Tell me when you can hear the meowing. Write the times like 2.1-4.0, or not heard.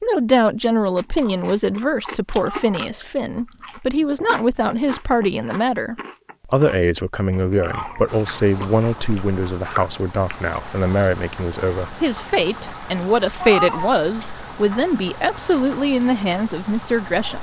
2.3-2.9, 7.5-8.1, 13.4-13.9.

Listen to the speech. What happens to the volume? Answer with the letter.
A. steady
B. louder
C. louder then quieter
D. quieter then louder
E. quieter
A.